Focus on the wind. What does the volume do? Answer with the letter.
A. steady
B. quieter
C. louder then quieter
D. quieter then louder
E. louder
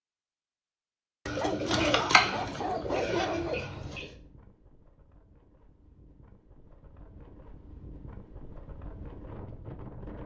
E.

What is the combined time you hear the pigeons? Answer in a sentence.
The pigeons can be heard for 3 seconds in total.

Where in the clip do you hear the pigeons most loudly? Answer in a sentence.
The loudest moment of the pigeons is at 2 seconds.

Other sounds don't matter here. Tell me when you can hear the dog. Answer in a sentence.
You can hear the dog from 1.4 to 3.6 s.